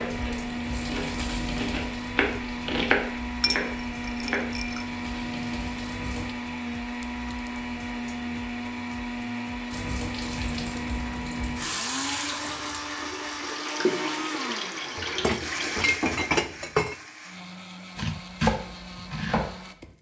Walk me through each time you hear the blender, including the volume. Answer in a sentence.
You can hear the blender from 0.0 to 19.9 s, getting quieter.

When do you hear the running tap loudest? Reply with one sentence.
The loudest moment of the running tap is at 14 seconds.